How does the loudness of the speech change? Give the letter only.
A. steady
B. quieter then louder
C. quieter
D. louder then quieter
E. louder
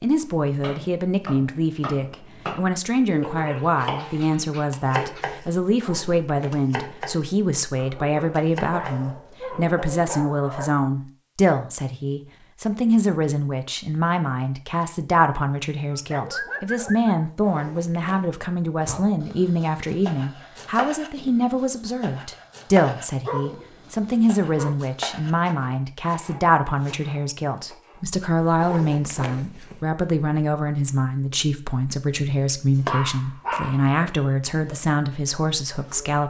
A.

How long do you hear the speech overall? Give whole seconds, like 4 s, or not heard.
36 s.